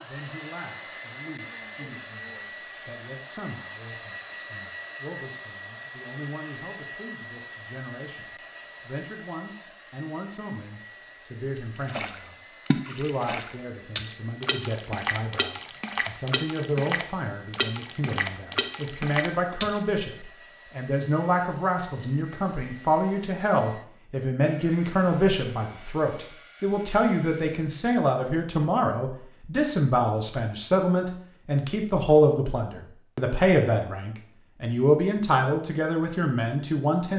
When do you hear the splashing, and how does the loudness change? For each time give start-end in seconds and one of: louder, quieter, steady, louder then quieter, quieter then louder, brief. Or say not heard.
11.8-19.8 steady.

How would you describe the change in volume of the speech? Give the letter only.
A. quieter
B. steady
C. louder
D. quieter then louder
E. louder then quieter
C.